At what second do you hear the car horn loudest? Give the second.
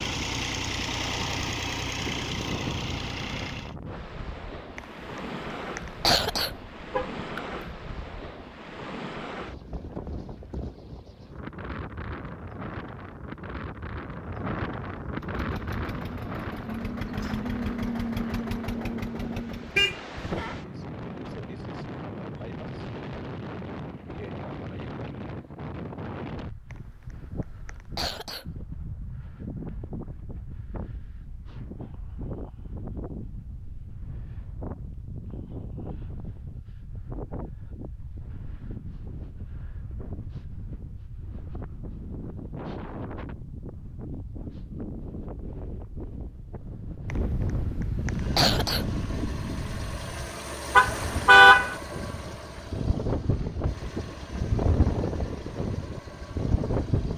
51 s.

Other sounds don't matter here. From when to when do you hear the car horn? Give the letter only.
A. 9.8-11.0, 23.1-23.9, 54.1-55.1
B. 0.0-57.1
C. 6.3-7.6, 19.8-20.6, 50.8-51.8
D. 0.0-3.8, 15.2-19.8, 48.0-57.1
C.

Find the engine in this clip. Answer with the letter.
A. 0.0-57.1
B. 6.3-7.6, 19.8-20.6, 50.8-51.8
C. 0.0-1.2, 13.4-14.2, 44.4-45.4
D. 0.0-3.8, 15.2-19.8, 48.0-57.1
D.